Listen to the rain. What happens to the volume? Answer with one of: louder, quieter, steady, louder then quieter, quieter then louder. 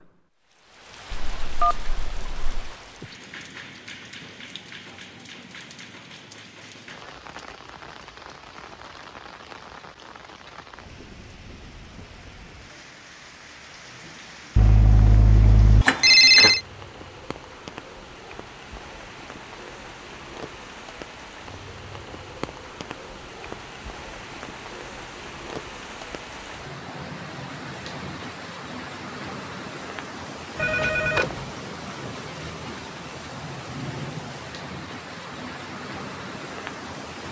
louder.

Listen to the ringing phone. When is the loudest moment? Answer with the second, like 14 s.
16 s.